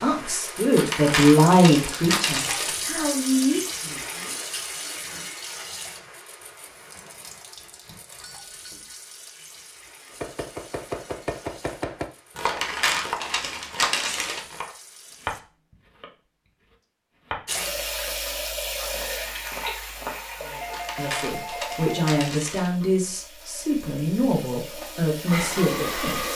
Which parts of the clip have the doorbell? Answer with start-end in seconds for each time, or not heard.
8.2-9.1, 20.5-22.2.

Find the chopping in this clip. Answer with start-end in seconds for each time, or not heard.
10.1-16.1, 16.7-20.7.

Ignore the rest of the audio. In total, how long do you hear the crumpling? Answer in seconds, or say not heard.
6 s.